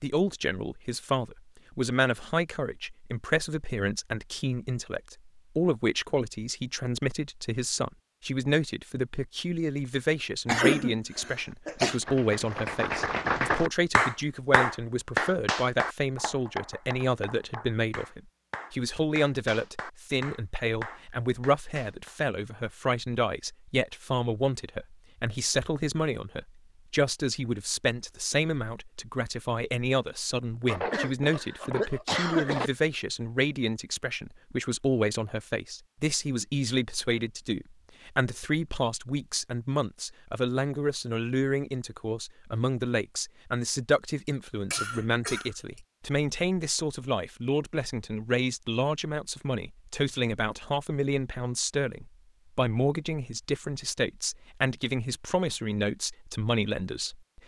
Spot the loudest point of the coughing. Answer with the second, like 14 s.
11 s.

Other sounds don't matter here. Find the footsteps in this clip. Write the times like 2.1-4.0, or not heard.
not heard.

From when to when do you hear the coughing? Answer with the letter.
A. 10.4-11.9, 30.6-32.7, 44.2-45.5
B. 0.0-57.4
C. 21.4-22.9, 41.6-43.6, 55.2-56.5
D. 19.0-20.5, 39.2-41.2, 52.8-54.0
A.